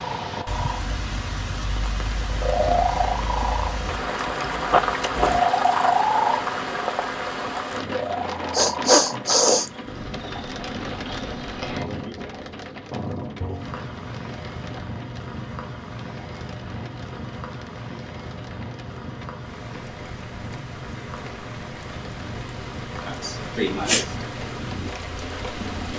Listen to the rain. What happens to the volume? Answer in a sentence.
The volume of the rain goes down, then up.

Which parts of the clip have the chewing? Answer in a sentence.
The chewing can be heard from 3.9 to 5.4 s.